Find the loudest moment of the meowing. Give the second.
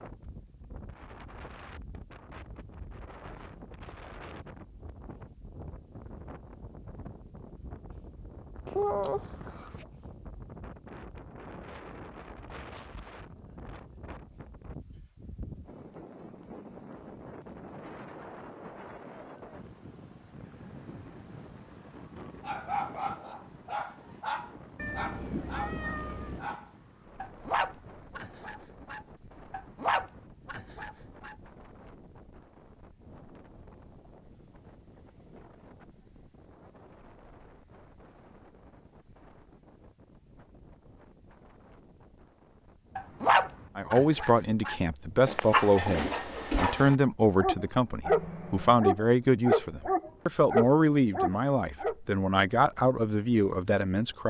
9 s.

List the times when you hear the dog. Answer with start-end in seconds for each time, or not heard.
22.4-31.4, 43.0-52.0.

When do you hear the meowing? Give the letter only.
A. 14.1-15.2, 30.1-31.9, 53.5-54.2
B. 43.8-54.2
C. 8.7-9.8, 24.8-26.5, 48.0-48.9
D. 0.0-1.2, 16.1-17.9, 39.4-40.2
C.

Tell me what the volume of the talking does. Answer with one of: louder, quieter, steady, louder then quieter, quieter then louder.
steady.